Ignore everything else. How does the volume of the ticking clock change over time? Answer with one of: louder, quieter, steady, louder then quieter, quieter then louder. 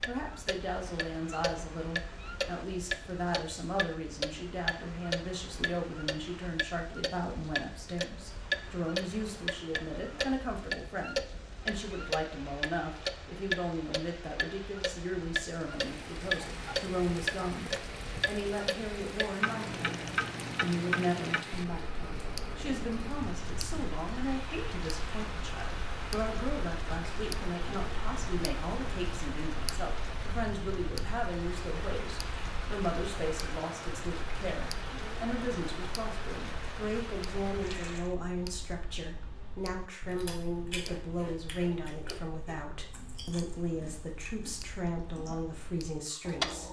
quieter.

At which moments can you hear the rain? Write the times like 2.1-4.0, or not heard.
0.1-38.1.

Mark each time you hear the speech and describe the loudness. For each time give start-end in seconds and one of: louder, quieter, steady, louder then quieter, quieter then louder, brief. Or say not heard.
0.1-46.6 steady.